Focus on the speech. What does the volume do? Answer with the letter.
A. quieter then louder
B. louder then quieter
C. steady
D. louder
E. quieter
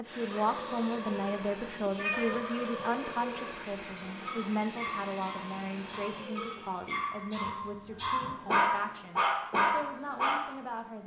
E.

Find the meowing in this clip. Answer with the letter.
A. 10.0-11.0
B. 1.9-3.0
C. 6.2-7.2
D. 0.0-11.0
B.